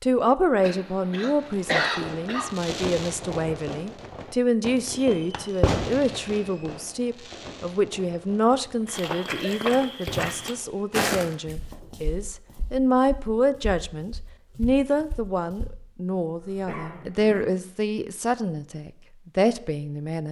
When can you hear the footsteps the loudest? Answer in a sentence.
The loudest moment of the footsteps is at 11 seconds.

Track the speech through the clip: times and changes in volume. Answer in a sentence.
You can hear the speech from 0.0 to 20.2 s, at a steady volume.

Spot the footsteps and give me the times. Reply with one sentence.
You can hear the footsteps from 8.8 to 15.7 s.